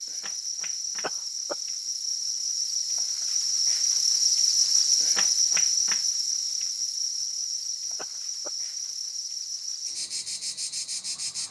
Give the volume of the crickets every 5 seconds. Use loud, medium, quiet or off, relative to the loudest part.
loud, loud, medium.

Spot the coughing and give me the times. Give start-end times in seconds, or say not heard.
1.0-1.6, 8.0-8.5.